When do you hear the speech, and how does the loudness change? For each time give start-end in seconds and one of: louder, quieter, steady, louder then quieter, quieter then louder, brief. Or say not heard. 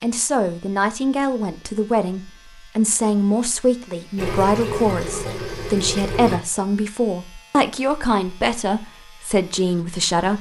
0.0-10.3 steady.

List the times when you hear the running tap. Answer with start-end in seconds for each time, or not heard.
4.2-6.4.